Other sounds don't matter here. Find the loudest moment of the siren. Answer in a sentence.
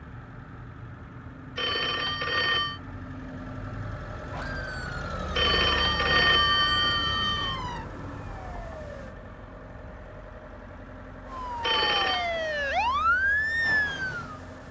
The volume of the siren peaks at 13 seconds.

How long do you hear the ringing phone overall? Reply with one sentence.
You can hear the ringing phone for 4 seconds altogether.